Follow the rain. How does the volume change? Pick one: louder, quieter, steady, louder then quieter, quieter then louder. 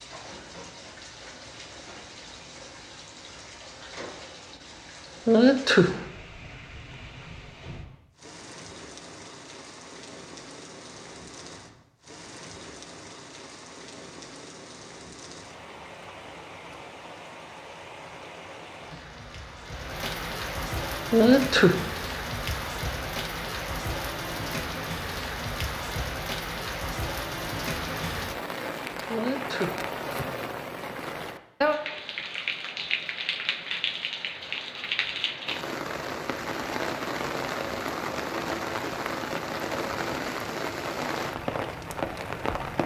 louder.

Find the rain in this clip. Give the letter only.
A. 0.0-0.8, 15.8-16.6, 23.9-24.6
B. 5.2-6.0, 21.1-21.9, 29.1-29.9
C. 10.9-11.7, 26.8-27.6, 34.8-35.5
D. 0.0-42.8
D.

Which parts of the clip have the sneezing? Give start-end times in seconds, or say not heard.
5.2-6.0, 21.1-21.9, 29.1-29.9.